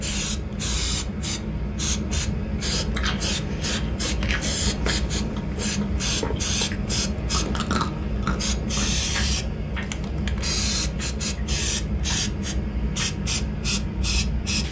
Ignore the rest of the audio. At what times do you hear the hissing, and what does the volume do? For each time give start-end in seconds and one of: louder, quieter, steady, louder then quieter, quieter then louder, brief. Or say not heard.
0.0-14.6 steady.